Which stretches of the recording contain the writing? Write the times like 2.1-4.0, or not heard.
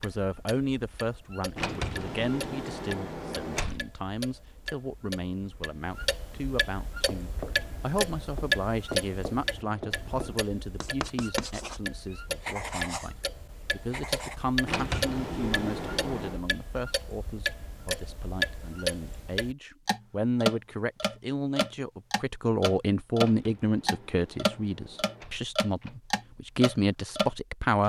7.0-14.4.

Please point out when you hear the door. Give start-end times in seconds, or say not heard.
1.6-3.9, 14.7-16.4, 23.1-26.0.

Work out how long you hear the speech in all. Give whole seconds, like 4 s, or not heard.
28 s.